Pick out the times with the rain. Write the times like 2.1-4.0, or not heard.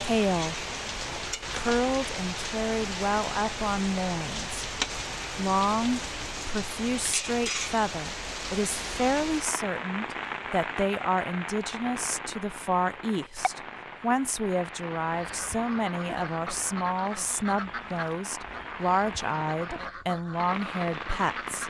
0.0-21.6.